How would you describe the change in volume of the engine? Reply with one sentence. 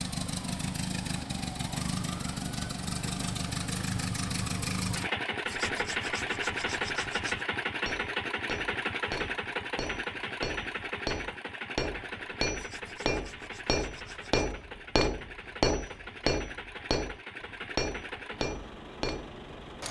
The loudness of the engine goes down.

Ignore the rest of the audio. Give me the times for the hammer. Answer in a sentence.
The hammer can be heard from 7.8 to 19.4 s.